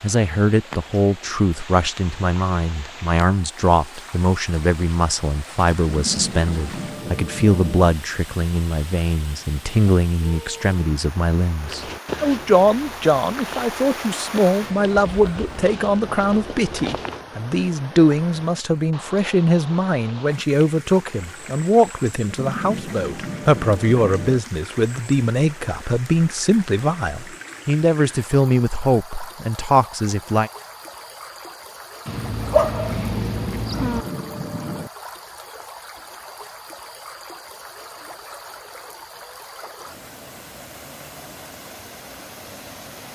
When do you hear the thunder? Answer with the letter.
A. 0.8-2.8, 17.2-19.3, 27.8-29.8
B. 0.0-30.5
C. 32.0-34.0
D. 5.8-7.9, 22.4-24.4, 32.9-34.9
D.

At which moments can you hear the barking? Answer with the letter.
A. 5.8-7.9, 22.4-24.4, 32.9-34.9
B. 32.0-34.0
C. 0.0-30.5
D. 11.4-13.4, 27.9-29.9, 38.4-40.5
B.